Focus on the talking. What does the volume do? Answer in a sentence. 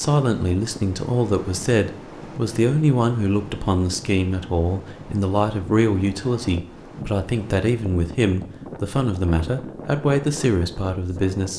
The volume of the talking stays about the same.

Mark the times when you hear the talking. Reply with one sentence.
The talking can be heard from 0.0 to 11.5 s.